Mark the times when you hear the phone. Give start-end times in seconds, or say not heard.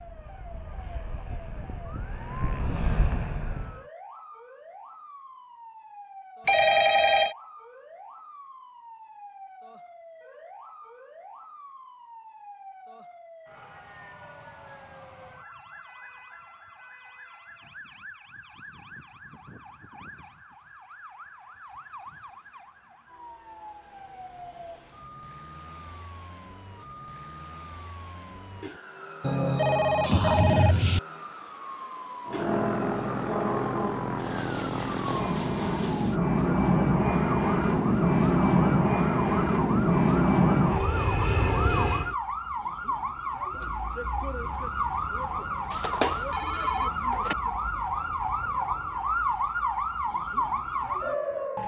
6.5-7.3, 29.2-31.0, 45.7-47.4.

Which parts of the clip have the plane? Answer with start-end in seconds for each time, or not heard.
0.0-3.9, 32.2-42.1.